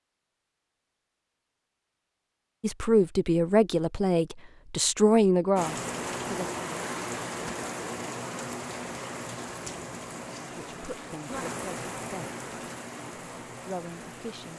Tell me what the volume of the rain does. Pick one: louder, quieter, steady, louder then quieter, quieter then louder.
quieter.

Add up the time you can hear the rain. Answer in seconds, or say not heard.
9 s.